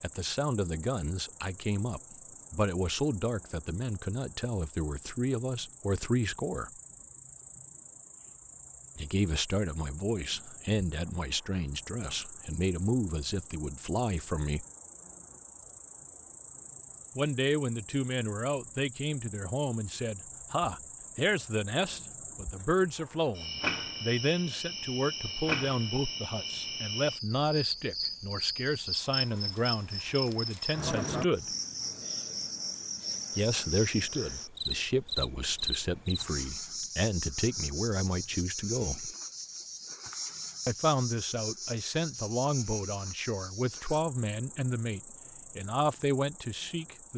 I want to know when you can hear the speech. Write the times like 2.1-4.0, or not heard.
0.0-6.7, 8.9-14.7, 17.1-31.4, 33.4-39.1, 40.6-47.1.